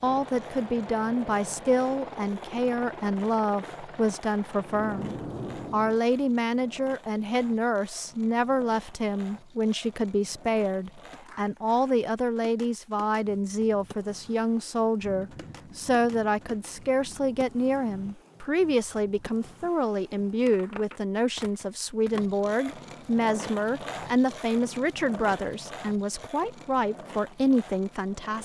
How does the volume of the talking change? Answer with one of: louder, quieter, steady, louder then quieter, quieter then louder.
steady.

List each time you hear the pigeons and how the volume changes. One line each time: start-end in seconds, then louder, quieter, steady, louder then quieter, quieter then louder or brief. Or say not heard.
not heard.